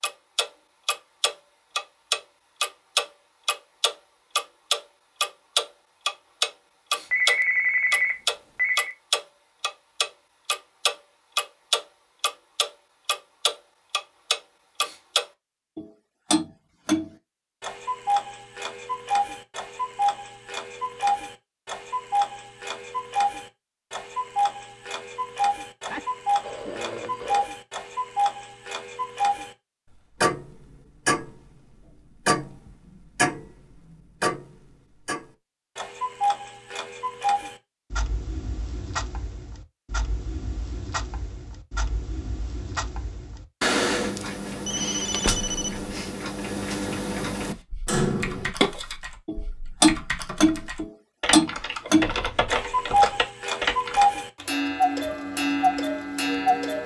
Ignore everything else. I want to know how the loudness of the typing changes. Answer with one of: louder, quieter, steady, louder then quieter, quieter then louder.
louder.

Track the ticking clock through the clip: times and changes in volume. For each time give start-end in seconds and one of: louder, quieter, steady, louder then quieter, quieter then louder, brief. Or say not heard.
0.0-56.8 quieter then louder.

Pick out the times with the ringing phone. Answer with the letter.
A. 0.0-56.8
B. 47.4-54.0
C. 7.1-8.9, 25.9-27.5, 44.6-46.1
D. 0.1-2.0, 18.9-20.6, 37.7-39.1
C.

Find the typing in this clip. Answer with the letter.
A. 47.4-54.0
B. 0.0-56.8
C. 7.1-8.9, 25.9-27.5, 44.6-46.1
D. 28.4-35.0
A.